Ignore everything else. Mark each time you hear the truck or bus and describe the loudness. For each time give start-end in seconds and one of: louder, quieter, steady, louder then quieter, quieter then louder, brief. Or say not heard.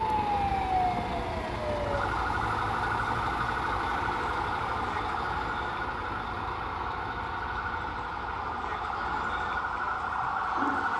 0.0-10.9 quieter.